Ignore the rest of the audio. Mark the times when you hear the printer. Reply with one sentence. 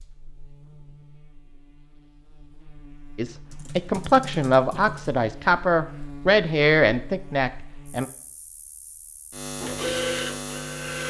The printer can be heard from 9.6 to 11.0 s.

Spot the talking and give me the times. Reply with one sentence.
You can hear the talking from 3.1 to 8.1 s.